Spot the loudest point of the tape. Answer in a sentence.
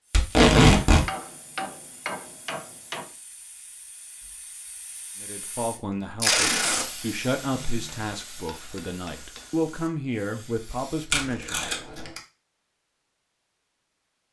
The loudest moment of the tape is at 1 second.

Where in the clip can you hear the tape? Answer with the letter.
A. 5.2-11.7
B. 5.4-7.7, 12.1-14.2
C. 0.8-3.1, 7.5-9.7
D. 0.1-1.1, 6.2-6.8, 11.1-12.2
D.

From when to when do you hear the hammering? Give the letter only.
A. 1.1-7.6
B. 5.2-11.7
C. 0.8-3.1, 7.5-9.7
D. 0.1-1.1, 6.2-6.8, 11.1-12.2
C.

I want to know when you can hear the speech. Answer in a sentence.
The speech can be heard from 5.2 to 11.7 s.